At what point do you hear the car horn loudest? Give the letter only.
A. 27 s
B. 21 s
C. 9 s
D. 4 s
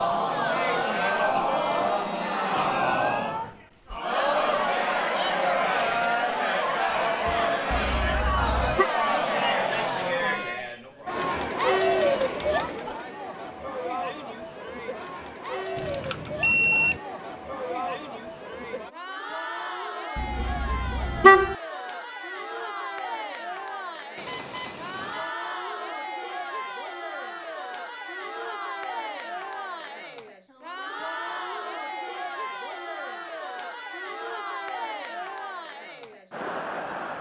B.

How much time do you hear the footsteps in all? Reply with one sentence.
The footsteps can't be heard in this clip.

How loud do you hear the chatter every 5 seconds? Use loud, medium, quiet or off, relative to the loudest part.
loud, loud, loud, medium, medium, medium, medium, medium.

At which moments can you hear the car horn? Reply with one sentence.
You can hear the car horn from 7.7 to 8.8 s and from 20.1 to 21.6 s.